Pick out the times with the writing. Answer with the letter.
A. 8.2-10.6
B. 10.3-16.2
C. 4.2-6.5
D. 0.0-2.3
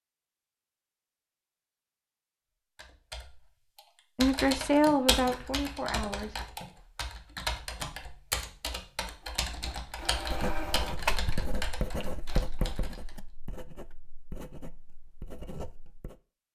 B.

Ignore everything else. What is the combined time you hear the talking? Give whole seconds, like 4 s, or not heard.
2 s.